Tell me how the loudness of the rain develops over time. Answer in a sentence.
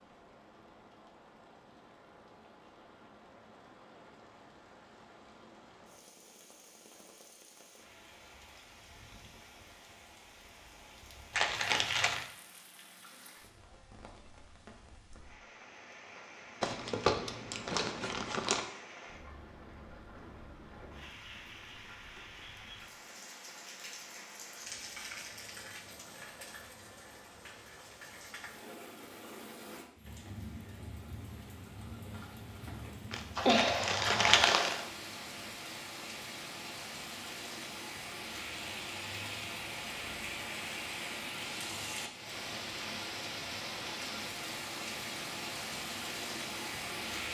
The volume of the rain goes up.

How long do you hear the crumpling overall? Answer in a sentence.
You can hear the crumpling for 5 seconds altogether.